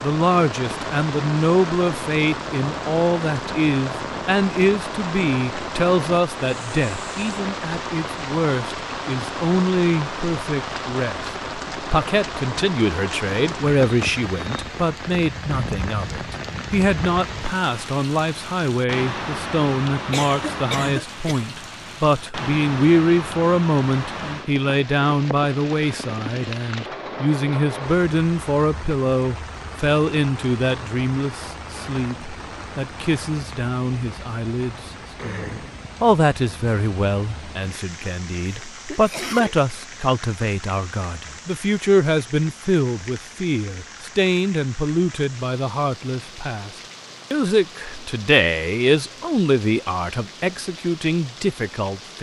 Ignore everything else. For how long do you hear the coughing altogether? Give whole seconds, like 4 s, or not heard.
2 s.